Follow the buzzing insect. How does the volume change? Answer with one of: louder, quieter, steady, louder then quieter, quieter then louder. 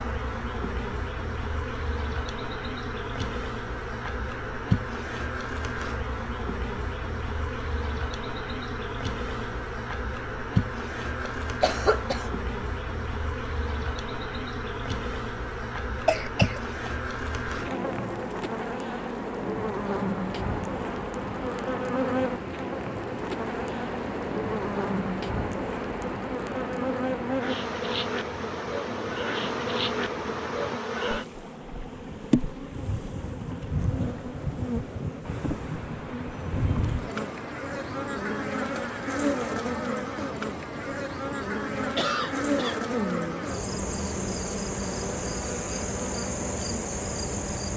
steady.